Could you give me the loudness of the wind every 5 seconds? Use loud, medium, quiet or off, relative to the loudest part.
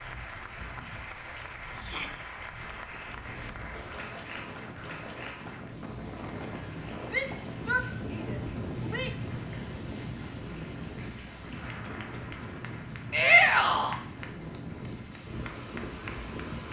medium, loud, loud, loud.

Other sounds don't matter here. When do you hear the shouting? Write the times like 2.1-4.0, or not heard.
1.8-2.2, 7.1-9.2, 13.1-13.9.